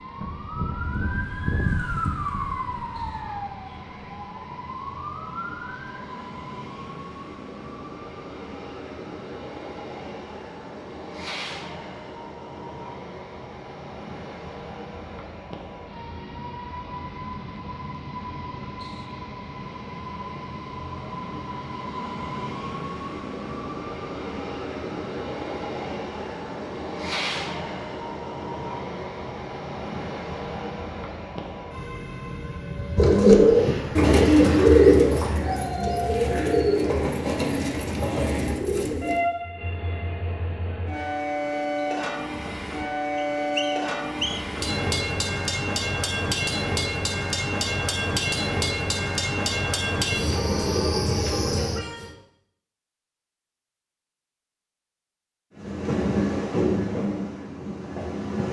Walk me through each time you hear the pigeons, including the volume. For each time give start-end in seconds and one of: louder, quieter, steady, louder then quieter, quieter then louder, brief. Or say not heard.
33.0-39.2 quieter.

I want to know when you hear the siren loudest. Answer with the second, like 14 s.
2 s.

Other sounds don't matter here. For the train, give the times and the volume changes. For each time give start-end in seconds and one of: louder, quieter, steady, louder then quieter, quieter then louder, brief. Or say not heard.
0.0-52.1 louder
55.5-58.4 brief.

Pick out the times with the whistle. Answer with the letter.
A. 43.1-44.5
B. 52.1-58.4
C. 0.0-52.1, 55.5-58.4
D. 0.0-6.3
A.